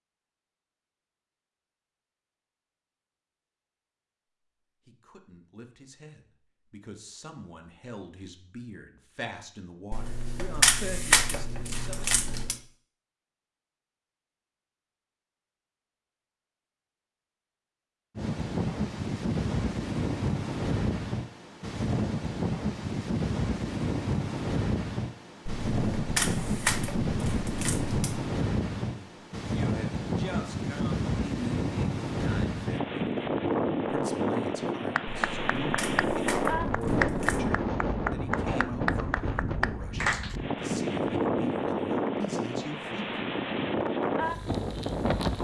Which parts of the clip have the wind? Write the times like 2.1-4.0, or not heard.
18.1-45.3.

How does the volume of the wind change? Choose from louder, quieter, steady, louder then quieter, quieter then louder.
steady.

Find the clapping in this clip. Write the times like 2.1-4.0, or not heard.
35.0-40.4.